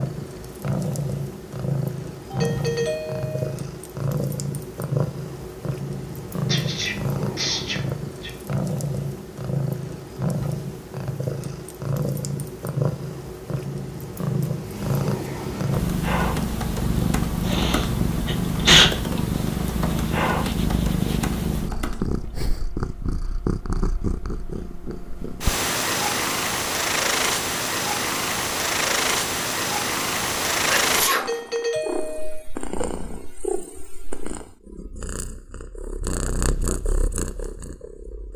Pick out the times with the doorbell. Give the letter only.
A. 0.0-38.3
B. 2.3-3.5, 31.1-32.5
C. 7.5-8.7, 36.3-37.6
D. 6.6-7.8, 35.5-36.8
B.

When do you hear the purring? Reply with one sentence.
You can hear the purring from 0.0 to 38.3 s.